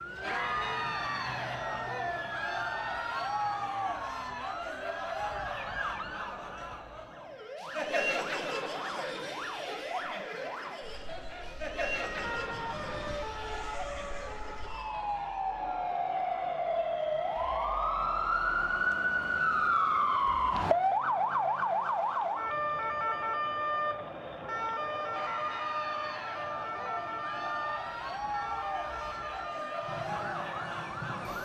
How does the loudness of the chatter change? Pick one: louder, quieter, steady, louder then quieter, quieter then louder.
quieter then louder.